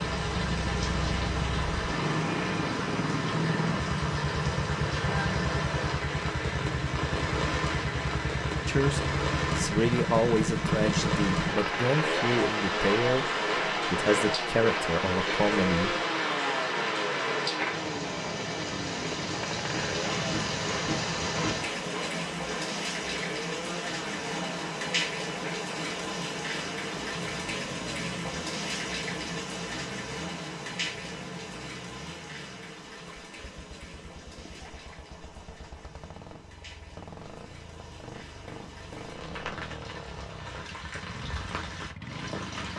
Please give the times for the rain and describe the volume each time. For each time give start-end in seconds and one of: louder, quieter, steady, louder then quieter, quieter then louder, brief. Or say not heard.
0.0-42.7 quieter.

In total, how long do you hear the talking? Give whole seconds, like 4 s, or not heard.
7 s.